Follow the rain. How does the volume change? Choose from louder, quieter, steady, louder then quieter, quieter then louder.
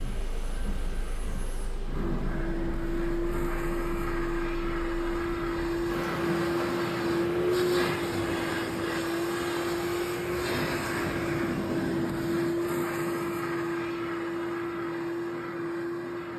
louder.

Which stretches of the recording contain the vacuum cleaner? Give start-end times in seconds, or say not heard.
0.0-16.3.